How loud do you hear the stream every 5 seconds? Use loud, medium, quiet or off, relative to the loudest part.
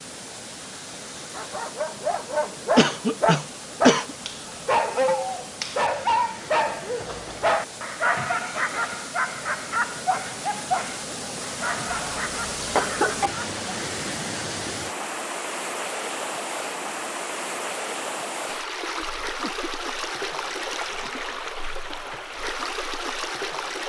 medium, medium, loud, loud, loud.